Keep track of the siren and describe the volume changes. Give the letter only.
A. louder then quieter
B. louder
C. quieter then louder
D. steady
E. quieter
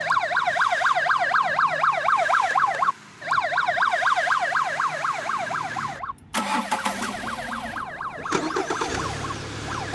E.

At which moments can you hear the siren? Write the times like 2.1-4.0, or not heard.
0.0-9.9.